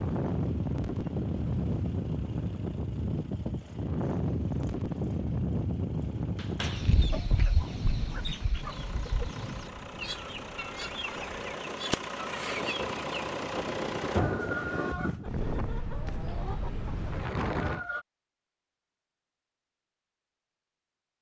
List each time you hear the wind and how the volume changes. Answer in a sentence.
The wind can be heard from 0.0 to 17.9 s, getting quieter then louder.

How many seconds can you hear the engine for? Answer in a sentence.
You can hear the engine for 14 seconds altogether.